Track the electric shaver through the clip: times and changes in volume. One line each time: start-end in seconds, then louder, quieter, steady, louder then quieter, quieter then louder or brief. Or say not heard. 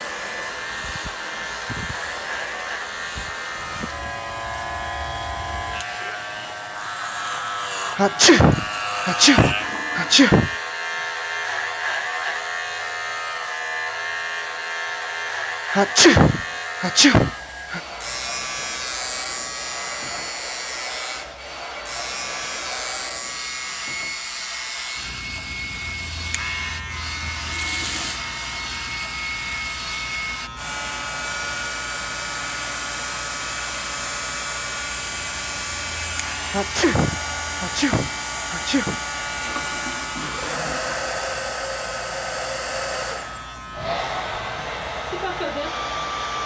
0.0-46.4 quieter.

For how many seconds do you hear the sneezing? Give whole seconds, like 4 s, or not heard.
7 s.